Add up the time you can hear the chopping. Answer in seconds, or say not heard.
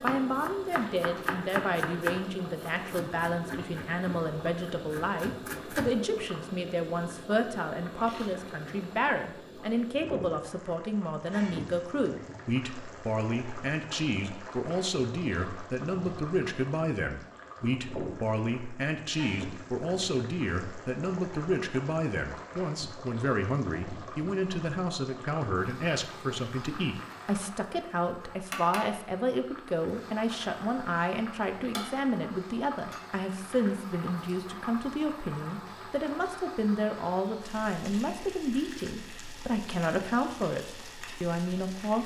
6 s.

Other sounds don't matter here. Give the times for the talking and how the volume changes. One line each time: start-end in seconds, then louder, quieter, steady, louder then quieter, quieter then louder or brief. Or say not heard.
0.0-42.0 steady.